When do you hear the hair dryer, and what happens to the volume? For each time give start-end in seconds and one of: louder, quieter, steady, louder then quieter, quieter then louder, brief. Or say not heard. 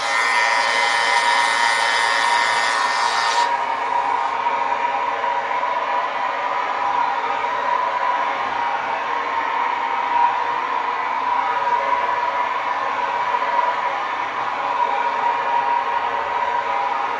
0.0-17.1 steady.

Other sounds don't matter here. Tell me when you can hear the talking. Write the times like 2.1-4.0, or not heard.
not heard.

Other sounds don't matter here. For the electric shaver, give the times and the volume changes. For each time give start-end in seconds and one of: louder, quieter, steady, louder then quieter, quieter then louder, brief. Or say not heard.
0.0-4.3 quieter.